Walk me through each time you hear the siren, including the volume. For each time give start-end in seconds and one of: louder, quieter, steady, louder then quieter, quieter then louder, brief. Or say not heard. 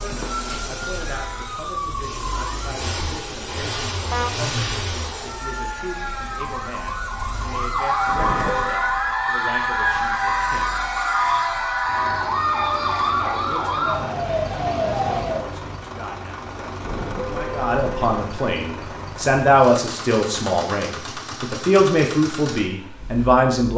0.0-2.8 brief
5.2-15.4 louder.